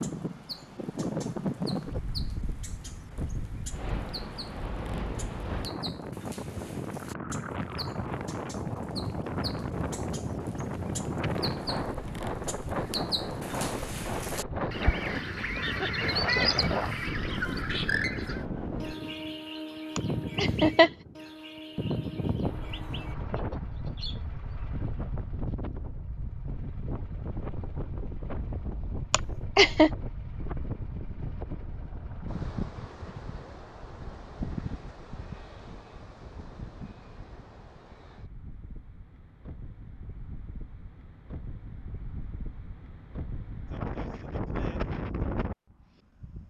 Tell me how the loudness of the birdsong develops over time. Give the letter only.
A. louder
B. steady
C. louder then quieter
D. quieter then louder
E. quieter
C.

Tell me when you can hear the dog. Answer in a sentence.
You can't hear the dog here.